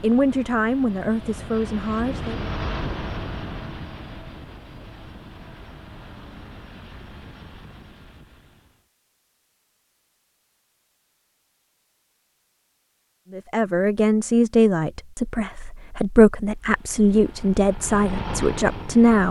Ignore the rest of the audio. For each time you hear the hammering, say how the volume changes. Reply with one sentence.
The hammering can't be heard in this clip.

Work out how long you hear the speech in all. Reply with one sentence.
You can hear the speech for 8 seconds altogether.